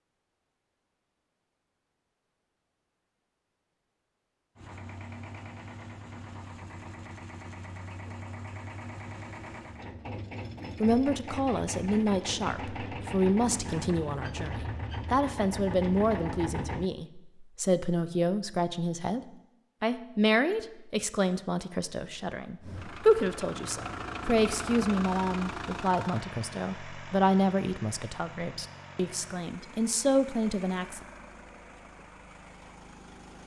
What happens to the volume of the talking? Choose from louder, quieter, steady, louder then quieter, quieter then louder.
steady.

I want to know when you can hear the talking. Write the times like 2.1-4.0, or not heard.
10.8-19.2, 19.8-31.1.